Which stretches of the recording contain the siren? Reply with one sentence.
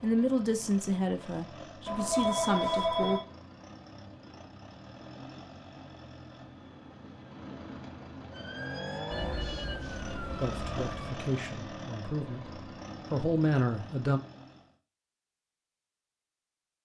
The siren can be heard from 8.3 to 11.2 s.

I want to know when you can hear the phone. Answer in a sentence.
You can hear the phone from 1.9 to 3.2 s and from 9.1 to 11.1 s.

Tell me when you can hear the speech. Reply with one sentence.
You can hear the speech from 0.0 to 3.2 s and from 10.4 to 14.2 s.